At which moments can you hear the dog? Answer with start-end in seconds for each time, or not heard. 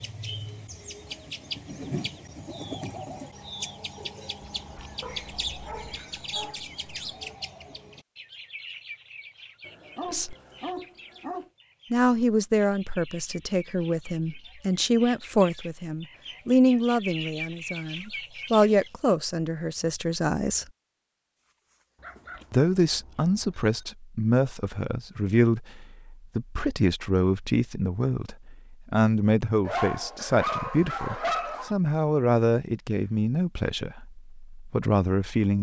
5.0-7.3, 9.7-11.5, 21.4-22.5, 29.6-31.8.